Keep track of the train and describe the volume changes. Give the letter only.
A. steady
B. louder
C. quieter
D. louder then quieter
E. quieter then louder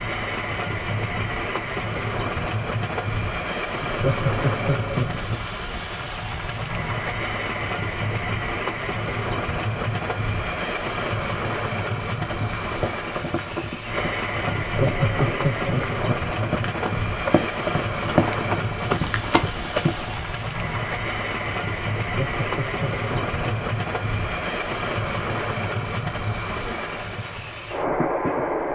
A.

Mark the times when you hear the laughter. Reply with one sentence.
You can hear the laughter from 3.9 to 5.4 s, from 14.6 to 16.2 s and from 22.0 to 23.6 s.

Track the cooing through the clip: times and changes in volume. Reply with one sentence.
The cooing can't be heard in this clip.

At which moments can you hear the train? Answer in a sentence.
You can hear the train from 0.0 to 28.7 s.